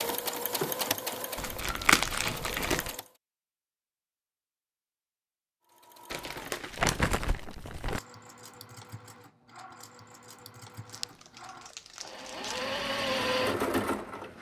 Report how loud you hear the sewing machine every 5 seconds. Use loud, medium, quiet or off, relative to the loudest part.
loud, quiet, loud.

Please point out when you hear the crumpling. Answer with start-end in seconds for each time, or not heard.
1.4-3.0, 6.1-8.0, 10.8-12.8.